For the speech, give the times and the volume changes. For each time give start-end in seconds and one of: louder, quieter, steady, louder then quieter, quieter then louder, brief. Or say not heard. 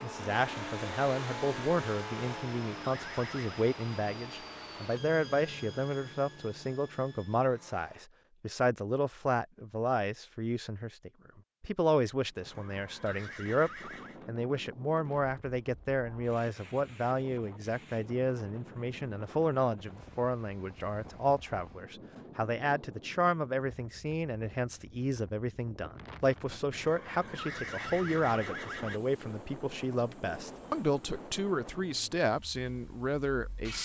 0.0-33.8 steady.